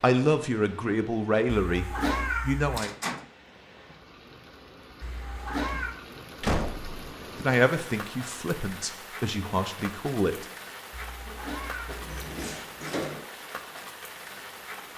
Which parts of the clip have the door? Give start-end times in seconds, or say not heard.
2.8-3.2, 6.4-7.0, 11.8-13.2.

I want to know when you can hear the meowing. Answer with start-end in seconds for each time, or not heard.
1.4-2.8, 5.0-6.0, 10.9-12.1.